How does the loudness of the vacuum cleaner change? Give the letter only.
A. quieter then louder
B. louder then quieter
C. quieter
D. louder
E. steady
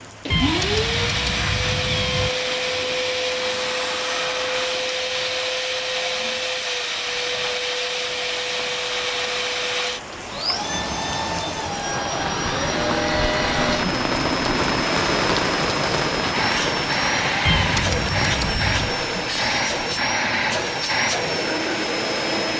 E.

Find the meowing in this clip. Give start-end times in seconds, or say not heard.
0.3-2.3, 17.4-18.9.